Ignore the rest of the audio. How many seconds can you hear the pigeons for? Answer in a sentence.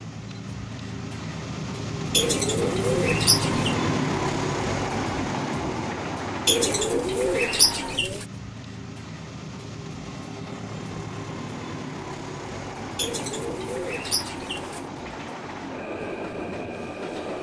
The pigeons can be heard for 5 seconds in total.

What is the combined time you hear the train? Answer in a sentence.
The train can be heard for 17 seconds in total.